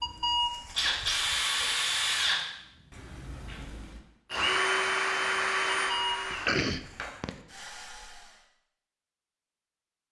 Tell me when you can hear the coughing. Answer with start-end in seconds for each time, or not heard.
6.3-7.3.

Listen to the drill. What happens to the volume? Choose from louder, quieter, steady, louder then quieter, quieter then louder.
quieter.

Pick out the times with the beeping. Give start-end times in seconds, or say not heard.
0.0-1.8, 5.7-7.4.